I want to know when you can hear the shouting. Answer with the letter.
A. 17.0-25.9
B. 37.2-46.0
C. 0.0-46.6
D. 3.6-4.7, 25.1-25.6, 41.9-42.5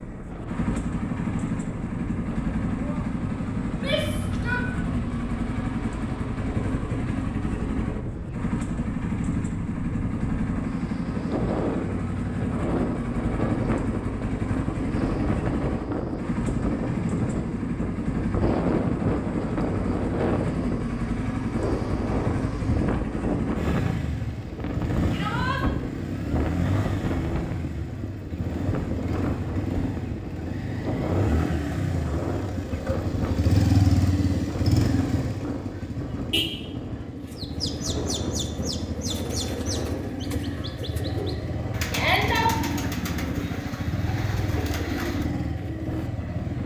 D.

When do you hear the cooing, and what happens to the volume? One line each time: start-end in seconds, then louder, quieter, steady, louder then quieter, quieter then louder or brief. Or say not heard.
37.2-46.0 steady.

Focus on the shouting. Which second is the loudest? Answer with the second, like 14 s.
42 s.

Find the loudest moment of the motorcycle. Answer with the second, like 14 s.
34 s.